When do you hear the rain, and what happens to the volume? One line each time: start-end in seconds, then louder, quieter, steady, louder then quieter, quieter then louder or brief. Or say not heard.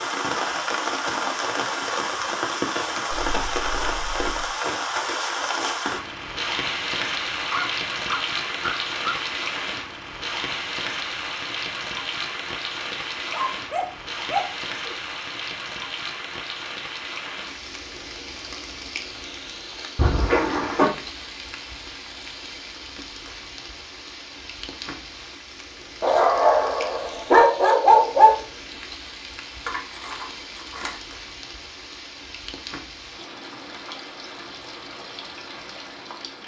0.0-36.4 quieter.